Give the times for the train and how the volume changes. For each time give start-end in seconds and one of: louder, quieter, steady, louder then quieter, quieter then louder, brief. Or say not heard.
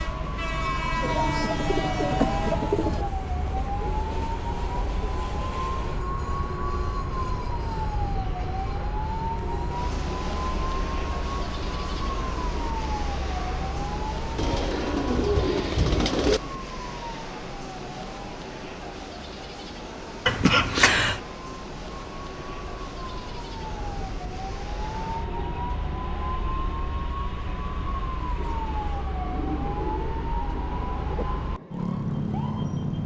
0.0-33.0 quieter.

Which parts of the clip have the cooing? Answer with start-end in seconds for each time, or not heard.
1.0-3.0, 14.3-16.4, 29.2-31.2.